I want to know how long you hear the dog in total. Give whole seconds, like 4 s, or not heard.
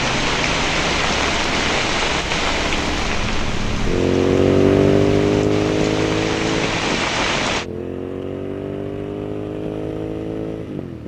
not heard.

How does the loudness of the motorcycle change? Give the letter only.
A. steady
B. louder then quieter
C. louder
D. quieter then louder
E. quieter
B.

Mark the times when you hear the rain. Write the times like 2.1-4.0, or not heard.
0.0-7.7.